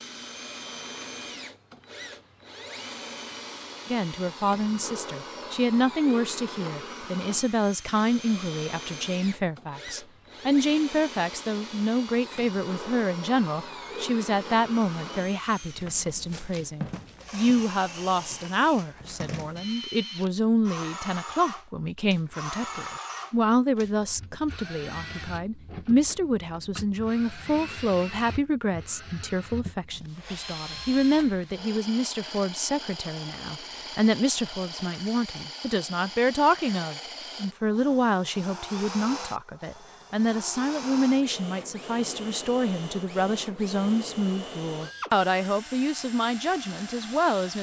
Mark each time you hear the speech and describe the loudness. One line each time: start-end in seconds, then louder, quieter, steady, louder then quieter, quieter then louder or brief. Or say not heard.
3.9-47.5 steady.